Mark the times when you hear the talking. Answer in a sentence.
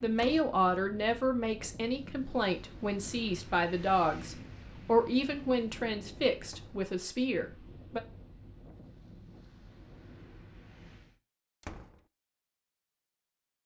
The talking can be heard from 0.0 to 8.0 s.